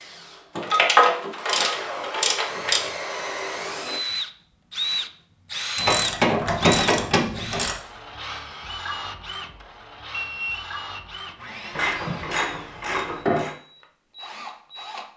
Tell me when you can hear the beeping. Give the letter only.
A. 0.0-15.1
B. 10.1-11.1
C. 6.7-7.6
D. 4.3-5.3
B.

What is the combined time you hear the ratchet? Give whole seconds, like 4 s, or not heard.
6 s.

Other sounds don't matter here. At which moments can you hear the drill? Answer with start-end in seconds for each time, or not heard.
0.0-15.1.